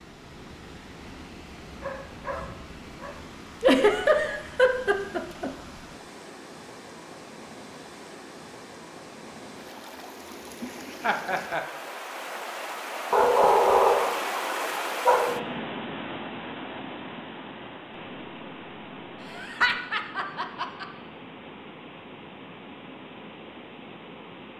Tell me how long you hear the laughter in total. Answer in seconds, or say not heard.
4 s.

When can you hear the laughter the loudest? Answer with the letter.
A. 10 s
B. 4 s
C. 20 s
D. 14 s
B.